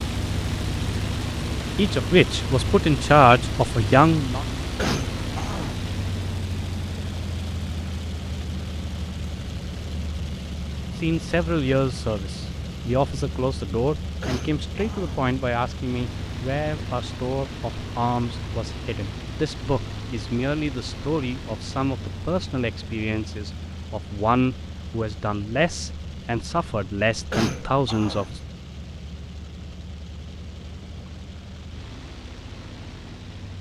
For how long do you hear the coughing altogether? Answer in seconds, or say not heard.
3 s.